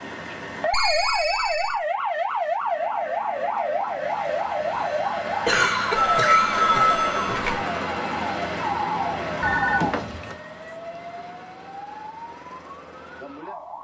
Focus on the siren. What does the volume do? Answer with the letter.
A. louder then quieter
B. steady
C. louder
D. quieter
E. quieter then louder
D.